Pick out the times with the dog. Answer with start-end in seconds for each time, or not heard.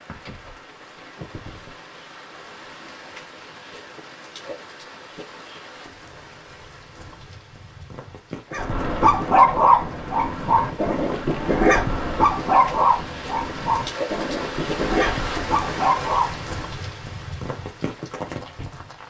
8.5-16.5.